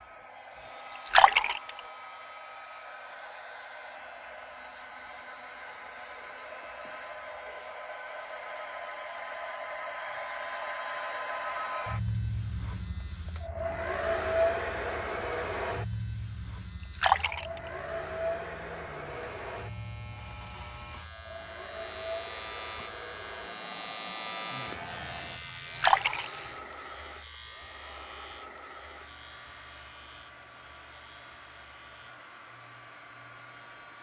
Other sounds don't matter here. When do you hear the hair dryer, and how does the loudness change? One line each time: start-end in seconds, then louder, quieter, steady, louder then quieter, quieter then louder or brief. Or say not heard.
0.0-33.9 louder then quieter.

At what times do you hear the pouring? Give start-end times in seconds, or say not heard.
0.9-1.8, 16.8-17.7, 25.6-26.3.